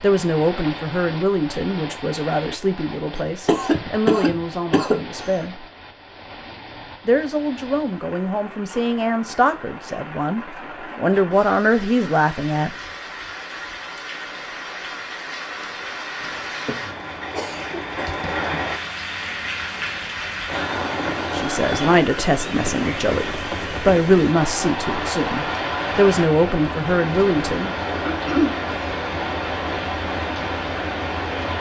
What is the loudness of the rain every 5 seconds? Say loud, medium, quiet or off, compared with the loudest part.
medium, quiet, medium, loud, loud, loud, loud.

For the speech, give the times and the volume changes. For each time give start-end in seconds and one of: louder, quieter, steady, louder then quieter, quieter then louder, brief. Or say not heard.
0.0-5.7 quieter
7.0-12.7 louder
21.3-27.8 steady.